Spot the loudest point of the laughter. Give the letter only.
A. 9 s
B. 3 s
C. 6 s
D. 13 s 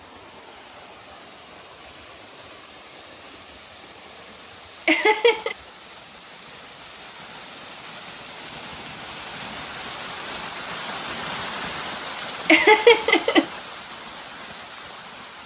D.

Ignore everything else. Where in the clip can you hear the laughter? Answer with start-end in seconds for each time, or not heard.
4.8-5.5, 12.4-13.4.